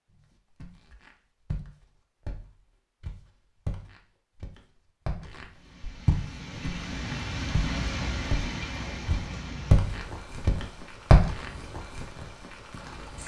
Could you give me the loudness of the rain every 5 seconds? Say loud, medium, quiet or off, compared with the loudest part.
off, loud, medium.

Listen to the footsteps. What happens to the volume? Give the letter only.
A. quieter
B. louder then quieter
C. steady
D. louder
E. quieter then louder
D.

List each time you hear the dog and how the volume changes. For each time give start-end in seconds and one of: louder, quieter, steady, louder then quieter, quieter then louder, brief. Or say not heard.
not heard.